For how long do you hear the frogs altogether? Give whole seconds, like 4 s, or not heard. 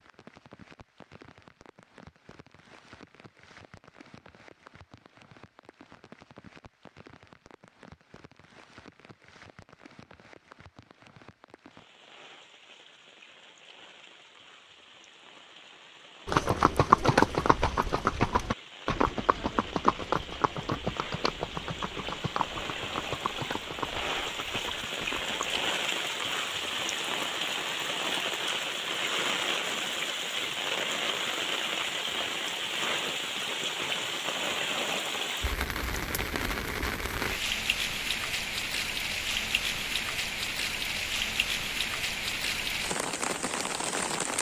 not heard.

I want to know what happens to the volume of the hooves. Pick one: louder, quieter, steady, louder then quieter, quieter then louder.
quieter.